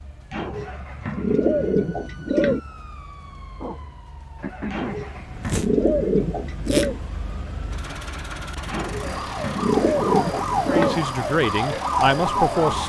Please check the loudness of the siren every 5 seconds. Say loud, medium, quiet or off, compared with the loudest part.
quiet, medium, loud.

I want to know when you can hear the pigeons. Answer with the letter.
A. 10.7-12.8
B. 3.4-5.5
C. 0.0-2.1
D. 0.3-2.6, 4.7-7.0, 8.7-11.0
D.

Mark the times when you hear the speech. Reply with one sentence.
You can hear the speech from 10.7 to 12.8 s.